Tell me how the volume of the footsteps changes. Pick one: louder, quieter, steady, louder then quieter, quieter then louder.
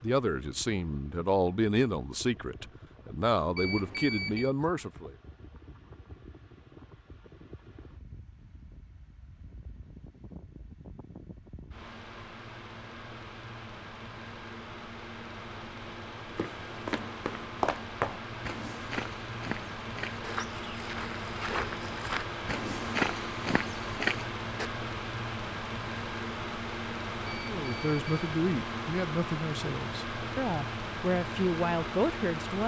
quieter then louder.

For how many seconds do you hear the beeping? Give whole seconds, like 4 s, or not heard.
2 s.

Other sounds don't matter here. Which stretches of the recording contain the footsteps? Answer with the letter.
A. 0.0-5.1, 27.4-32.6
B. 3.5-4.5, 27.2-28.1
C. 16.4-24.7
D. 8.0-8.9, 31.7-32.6
C.